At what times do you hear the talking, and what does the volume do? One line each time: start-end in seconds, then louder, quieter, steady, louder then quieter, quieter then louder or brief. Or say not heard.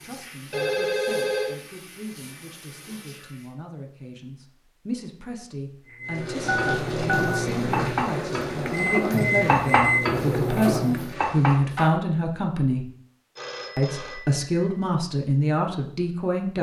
0.0-12.8 louder
13.8-16.5 brief.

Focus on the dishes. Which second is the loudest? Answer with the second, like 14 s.
10 s.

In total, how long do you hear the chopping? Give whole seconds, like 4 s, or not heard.
not heard.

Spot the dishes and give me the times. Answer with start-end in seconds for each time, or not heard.
6.5-11.9.